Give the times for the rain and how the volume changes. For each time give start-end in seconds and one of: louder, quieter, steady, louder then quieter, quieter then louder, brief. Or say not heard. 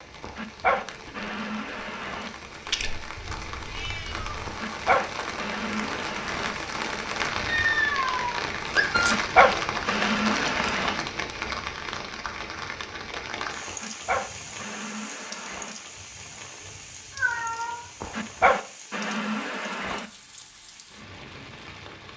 0.0-22.1 louder then quieter.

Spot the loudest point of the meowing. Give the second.
8 s.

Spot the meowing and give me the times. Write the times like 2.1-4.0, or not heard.
3.1-4.5, 7.5-8.4, 17.1-18.2.